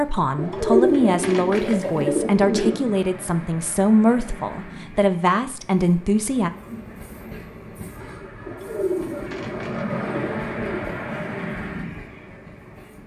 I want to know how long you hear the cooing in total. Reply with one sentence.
You can hear the cooing for 5 seconds altogether.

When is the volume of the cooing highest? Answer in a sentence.
The loudest moment of the cooing is at 1 second.